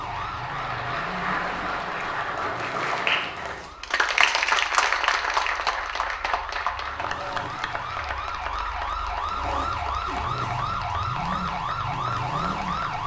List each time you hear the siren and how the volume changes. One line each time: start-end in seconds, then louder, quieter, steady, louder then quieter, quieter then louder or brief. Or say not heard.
0.0-13.0 quieter then louder.